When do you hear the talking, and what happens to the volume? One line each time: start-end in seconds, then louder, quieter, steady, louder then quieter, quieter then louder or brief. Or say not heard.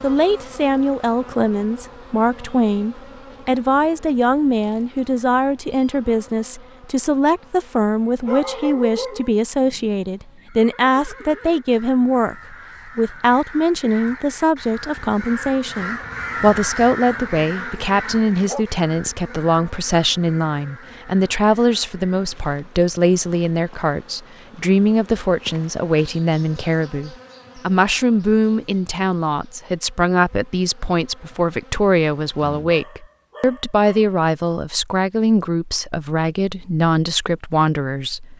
0.0-38.3 steady.